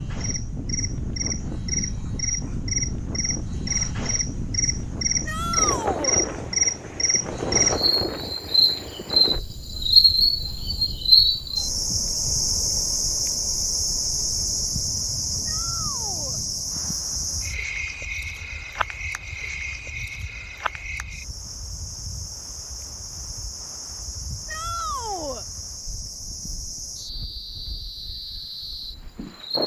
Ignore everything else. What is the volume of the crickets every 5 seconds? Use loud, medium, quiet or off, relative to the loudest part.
medium, loud, loud, medium, quiet, quiet.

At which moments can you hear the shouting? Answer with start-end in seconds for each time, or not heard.
5.2-6.2, 15.4-16.4, 24.4-25.4.